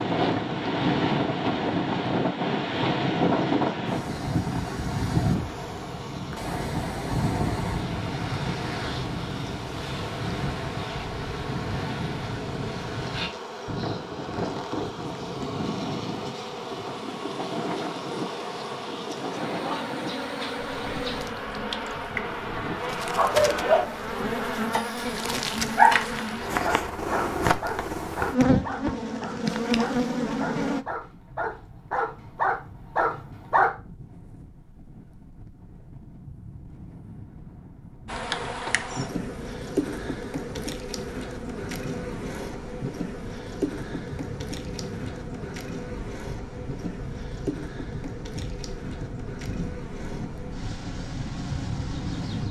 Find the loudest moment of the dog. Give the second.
26 s.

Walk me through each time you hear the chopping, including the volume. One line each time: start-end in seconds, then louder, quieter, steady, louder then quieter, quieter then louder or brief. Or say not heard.
not heard.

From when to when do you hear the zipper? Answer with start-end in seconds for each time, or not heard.
not heard.